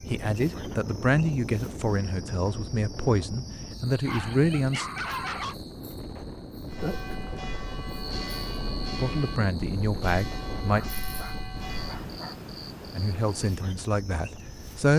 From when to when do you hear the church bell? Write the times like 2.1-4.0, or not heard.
6.7-12.1.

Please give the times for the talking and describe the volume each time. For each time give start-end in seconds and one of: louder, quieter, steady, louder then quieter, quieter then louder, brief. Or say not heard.
0.1-4.8 quieter then louder
8.9-10.8 brief
12.9-14.9 brief.